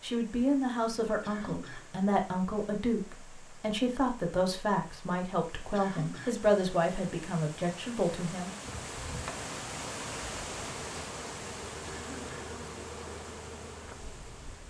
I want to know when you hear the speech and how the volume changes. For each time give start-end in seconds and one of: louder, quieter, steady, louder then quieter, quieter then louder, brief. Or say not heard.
0.0-8.5 steady.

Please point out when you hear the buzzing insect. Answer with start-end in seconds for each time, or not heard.
8.6-14.6.